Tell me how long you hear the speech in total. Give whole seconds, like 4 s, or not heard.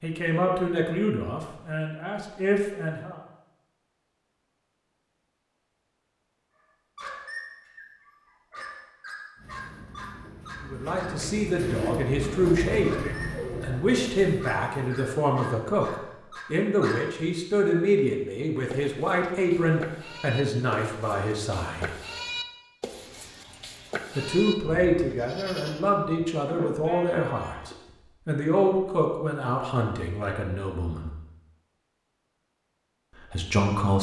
22 s.